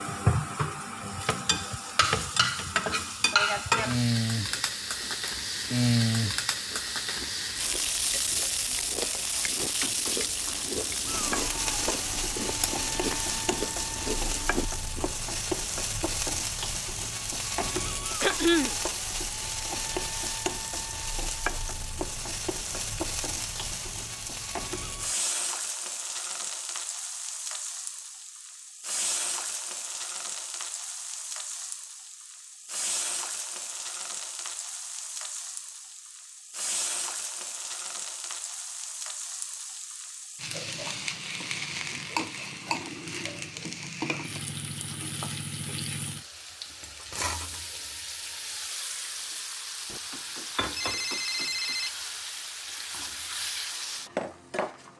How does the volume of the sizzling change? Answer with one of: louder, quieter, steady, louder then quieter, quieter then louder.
quieter.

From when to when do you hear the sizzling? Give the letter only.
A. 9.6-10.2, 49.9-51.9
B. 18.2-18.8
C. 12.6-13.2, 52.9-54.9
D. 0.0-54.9
D.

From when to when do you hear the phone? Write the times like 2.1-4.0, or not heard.
9.6-10.2, 49.9-51.9.